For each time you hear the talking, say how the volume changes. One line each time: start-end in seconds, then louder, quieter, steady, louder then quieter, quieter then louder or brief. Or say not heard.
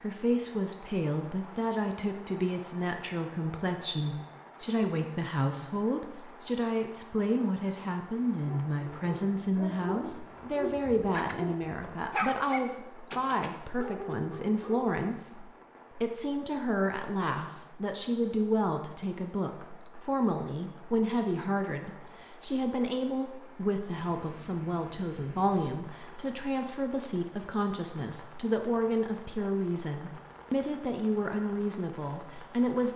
0.0-32.9 steady.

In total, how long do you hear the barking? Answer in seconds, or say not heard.
6 s.